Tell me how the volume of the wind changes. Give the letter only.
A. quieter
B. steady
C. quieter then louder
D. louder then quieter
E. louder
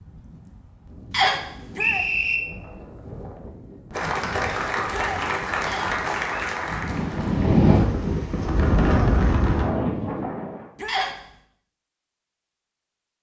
E.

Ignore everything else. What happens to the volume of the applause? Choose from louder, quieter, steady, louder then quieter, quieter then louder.
quieter.